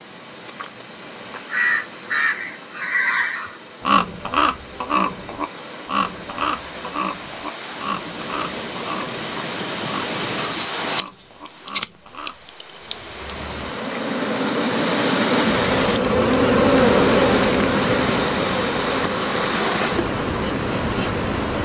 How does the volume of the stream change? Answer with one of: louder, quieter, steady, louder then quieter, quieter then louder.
louder.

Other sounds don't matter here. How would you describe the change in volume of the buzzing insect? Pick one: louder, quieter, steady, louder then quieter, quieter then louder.
louder then quieter.